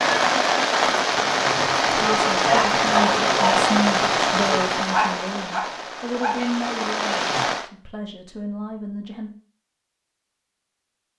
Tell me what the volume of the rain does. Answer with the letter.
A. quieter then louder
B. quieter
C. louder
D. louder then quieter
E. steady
B.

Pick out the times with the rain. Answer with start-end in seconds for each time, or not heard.
0.0-7.7.